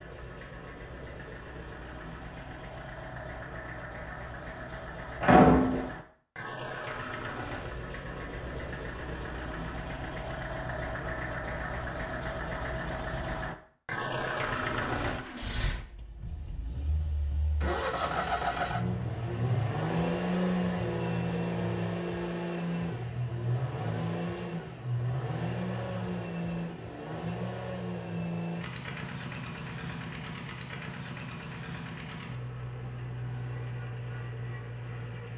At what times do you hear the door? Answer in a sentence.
You can hear the door from 5.2 to 5.8 s.